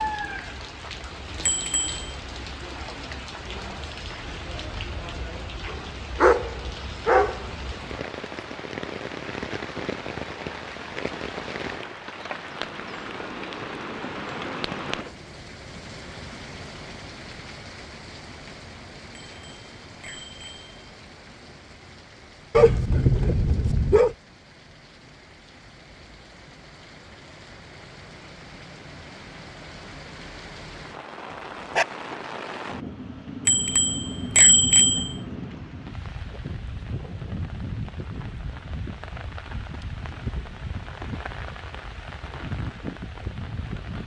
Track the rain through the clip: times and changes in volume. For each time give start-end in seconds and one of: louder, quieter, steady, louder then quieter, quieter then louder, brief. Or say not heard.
0.0-44.0 quieter then louder.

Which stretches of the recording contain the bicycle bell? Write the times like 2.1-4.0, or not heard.
1.4-2.1, 19.1-20.7, 33.5-35.1.